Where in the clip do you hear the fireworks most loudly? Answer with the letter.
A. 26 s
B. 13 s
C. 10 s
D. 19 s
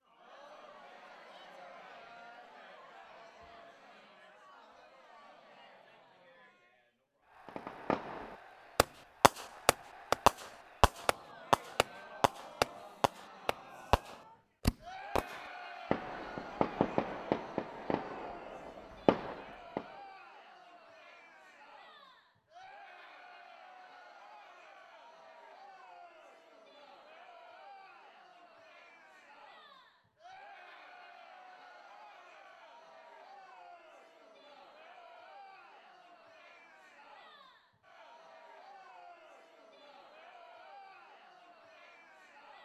C.